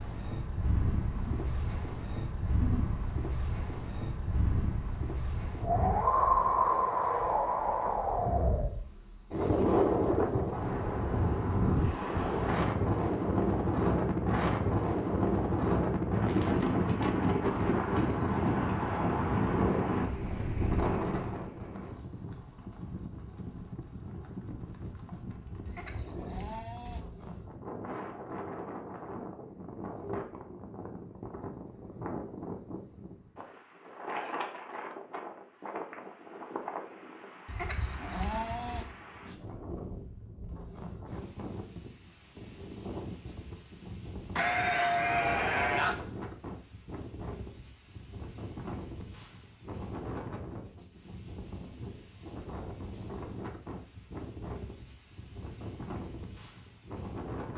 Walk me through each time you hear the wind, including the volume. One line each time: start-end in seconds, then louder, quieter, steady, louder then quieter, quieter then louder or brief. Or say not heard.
0.0-57.5 quieter.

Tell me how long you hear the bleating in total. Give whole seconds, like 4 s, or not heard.
6 s.